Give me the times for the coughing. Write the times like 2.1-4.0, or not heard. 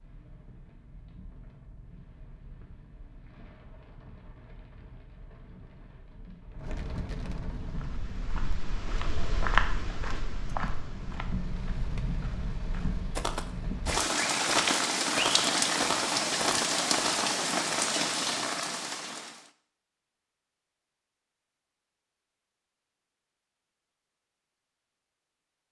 not heard.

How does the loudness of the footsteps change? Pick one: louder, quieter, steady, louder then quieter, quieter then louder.
quieter then louder.